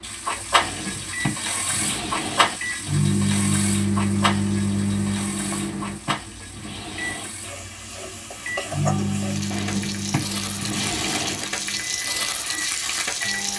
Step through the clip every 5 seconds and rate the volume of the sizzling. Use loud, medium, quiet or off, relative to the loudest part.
loud, medium, loud.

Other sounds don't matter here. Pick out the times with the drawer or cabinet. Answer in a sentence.
You can hear the drawer or cabinet from 0.6 to 2.6 s, from 5.4 to 7.3 s and from 9.5 to 11.4 s.